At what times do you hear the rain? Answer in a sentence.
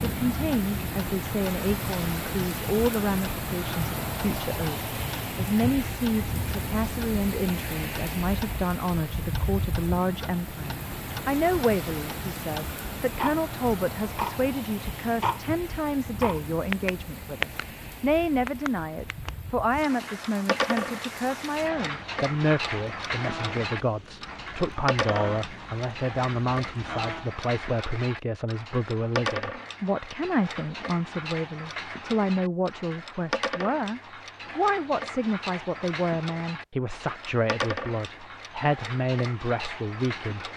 You can hear the rain from 0.0 to 27.4 s.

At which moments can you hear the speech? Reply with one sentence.
You can hear the speech from 0.0 to 40.5 s.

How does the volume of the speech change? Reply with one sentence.
The volume of the speech stays about the same.